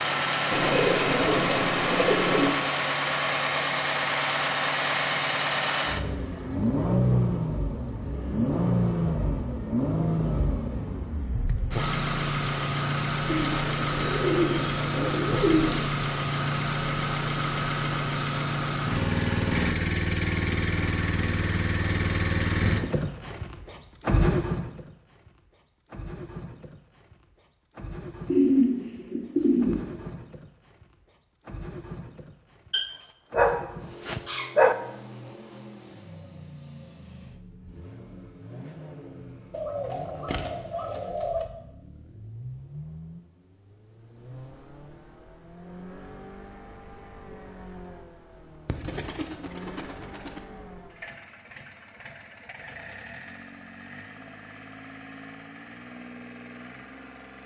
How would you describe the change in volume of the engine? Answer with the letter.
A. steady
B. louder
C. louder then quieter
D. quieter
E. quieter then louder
D.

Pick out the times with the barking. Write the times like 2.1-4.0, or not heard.
32.7-34.8.